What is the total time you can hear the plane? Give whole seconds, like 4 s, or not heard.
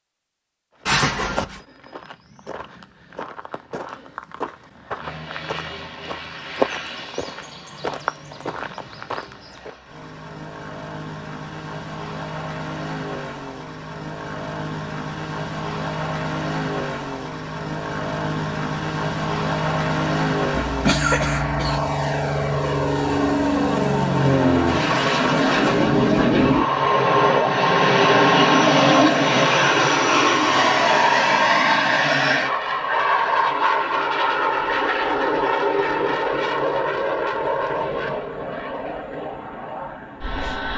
36 s.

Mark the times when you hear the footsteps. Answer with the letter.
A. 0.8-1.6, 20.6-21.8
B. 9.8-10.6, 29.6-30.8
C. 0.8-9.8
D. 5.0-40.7
C.